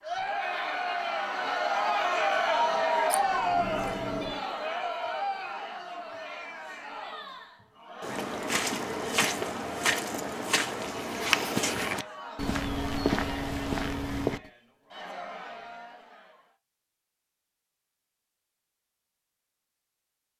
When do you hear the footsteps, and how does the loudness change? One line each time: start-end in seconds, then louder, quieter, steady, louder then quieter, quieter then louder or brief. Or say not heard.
8.0-14.4 steady.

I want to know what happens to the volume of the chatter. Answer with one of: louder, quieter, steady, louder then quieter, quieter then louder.
quieter.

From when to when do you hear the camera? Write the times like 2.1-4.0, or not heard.
3.1-4.5.